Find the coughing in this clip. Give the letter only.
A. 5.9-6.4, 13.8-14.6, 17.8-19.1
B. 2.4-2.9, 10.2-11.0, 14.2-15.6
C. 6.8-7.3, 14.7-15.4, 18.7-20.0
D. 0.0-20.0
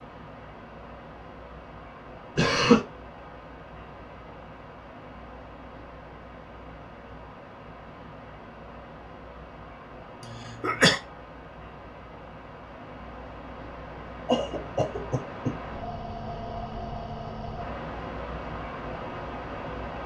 B.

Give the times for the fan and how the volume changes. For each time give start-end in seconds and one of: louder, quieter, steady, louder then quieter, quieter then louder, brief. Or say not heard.
0.0-20.0 louder.